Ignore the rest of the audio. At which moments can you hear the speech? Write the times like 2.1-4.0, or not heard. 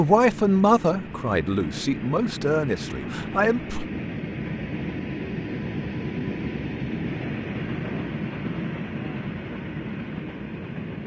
0.0-3.9.